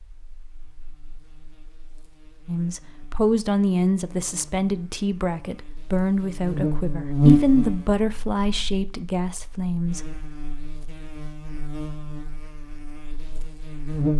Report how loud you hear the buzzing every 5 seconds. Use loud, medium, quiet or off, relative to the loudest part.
quiet, loud, medium.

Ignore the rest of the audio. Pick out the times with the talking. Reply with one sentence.
The talking can be heard from 2.5 to 10.0 s.